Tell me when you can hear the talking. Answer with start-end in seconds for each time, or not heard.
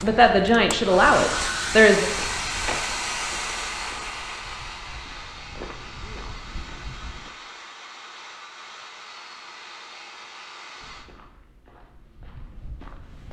0.0-2.0.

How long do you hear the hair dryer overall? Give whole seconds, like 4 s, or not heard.
11 s.